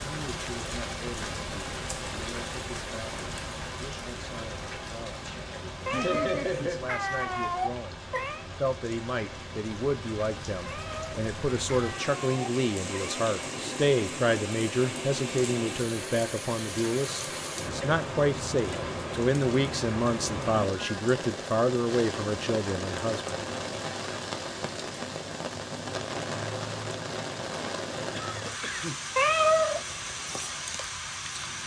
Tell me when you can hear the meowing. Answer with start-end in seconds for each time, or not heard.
5.8-8.4, 10.7-13.2, 29.1-29.8.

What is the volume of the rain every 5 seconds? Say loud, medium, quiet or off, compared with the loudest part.
loud, medium, loud, loud, loud, loud, loud.